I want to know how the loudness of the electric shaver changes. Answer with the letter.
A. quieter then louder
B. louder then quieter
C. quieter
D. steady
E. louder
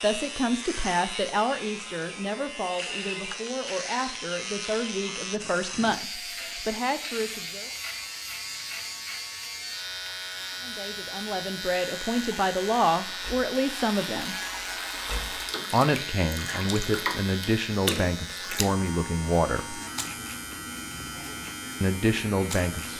D.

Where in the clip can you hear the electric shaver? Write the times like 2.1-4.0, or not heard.
0.0-22.9.